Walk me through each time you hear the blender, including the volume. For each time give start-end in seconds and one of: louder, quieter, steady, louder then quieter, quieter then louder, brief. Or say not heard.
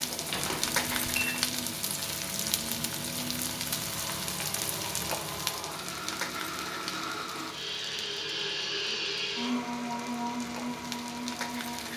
0.0-11.9 louder.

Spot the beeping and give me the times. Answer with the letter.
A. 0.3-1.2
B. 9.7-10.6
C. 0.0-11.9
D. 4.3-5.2
A.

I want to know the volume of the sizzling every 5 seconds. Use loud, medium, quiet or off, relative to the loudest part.
loud, medium, medium.